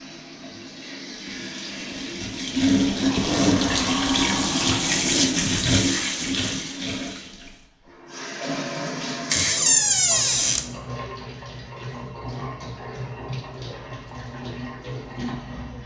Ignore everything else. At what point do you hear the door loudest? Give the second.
10 s.